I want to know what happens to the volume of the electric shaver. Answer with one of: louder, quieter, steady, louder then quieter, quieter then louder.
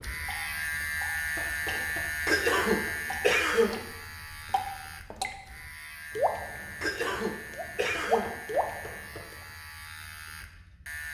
quieter.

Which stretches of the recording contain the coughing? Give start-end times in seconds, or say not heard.
2.2-3.9, 6.8-8.4.